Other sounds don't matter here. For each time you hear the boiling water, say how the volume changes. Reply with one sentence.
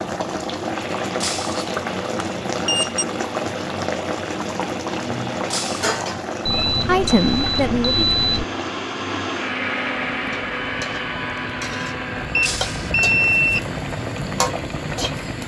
The boiling water can be heard from 0.0 to 15.4 s, getting quieter then louder.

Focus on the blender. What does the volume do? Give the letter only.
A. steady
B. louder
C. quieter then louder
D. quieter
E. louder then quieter
E.